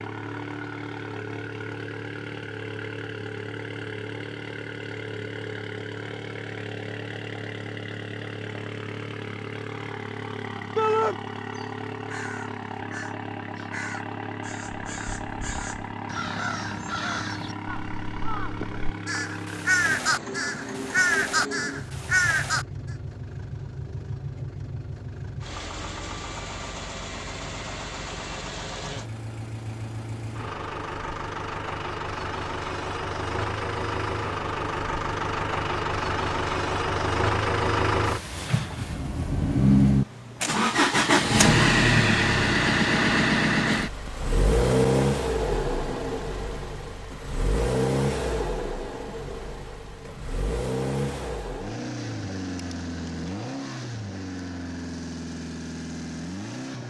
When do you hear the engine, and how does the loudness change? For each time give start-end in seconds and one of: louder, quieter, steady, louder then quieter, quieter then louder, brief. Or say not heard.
0.0-56.8 louder then quieter.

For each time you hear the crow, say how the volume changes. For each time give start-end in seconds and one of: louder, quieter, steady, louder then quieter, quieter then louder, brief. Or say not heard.
10.8-22.6 louder.